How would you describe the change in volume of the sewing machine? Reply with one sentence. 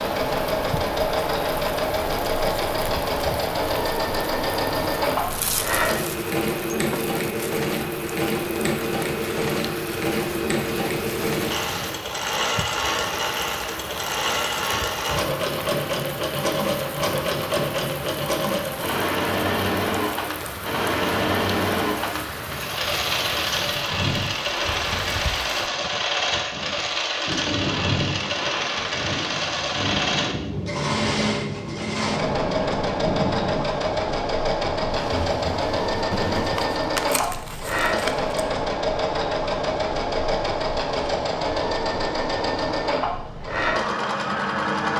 The loudness of the sewing machine stays about the same.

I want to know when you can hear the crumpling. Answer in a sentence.
You can hear the crumpling from 5.3 to 7.5 s and from 36.4 to 38.4 s.